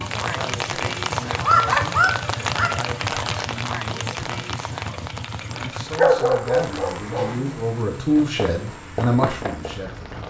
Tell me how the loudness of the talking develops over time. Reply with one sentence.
The volume of the talking goes up.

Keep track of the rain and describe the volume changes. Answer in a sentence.
The loudness of the rain goes down.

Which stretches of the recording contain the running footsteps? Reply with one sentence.
You can hear the running footsteps from 8.2 to 10.2 s.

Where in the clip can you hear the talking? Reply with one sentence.
You can hear the talking from 0.1 to 10.2 s.